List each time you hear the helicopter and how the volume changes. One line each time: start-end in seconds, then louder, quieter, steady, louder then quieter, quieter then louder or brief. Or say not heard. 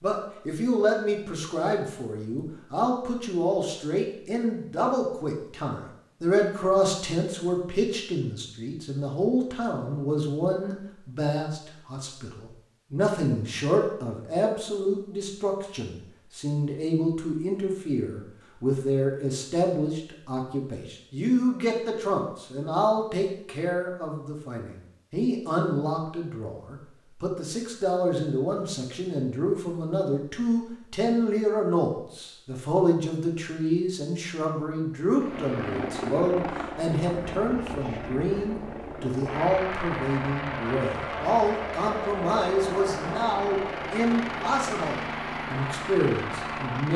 35.1-46.9 steady.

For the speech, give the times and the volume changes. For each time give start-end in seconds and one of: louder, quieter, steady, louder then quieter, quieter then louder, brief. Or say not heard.
0.0-46.9 steady.